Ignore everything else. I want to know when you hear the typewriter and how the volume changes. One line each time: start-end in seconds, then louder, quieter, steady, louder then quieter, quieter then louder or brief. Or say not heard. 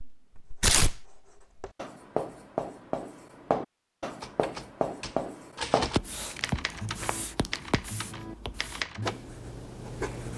4.0-9.2 louder then quieter.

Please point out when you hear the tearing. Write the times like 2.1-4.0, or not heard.
0.6-1.0, 6.0-7.7.